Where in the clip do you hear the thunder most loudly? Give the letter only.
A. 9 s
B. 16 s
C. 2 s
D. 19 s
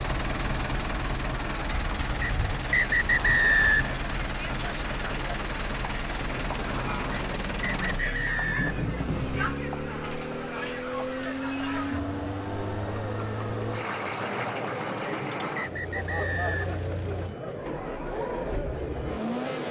A.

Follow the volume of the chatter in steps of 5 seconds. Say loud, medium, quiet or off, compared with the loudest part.
medium, loud, loud, loud.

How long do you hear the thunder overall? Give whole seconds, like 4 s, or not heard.
3 s.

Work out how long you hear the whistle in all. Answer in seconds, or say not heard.
5 s.